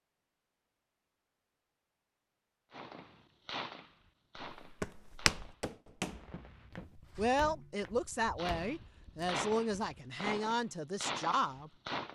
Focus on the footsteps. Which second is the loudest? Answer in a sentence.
The volume of the footsteps peaks at 5 seconds.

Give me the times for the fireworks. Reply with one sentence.
You can hear the fireworks from 2.7 to 12.1 s.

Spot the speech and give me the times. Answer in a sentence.
The speech can be heard from 7.2 to 11.7 s.